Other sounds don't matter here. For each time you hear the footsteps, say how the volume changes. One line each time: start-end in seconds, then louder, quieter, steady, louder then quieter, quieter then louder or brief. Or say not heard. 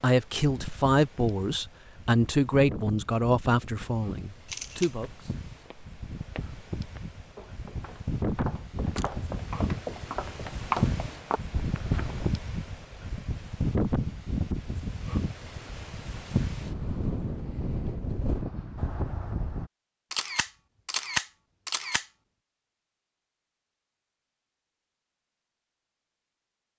5.0-12.3 louder.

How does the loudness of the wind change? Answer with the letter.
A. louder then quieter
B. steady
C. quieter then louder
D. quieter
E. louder
E.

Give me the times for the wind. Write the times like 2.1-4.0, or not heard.
0.1-19.7.